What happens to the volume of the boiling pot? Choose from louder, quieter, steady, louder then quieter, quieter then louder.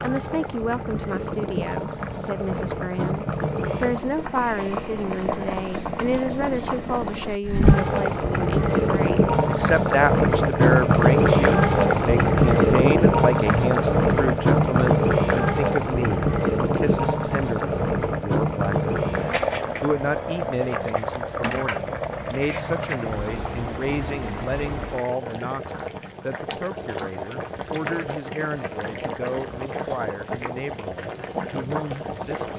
louder then quieter.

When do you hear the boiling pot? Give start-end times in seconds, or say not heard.
0.0-32.5.